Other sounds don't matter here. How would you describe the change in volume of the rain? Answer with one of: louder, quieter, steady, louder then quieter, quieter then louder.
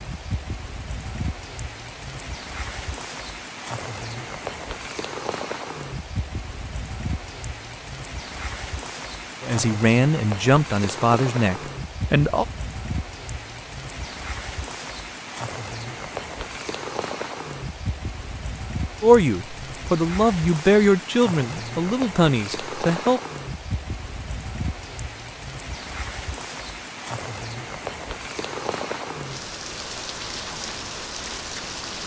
steady.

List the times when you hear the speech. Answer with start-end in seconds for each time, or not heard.
9.4-12.4, 19.0-23.2.